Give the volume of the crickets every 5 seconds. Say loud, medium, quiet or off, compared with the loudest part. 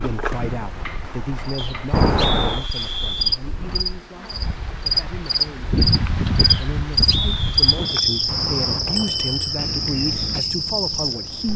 medium, loud, loud.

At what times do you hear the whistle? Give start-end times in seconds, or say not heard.
1.6-3.4, 6.5-8.3.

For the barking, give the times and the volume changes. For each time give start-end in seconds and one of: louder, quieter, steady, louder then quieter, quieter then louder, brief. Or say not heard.
not heard.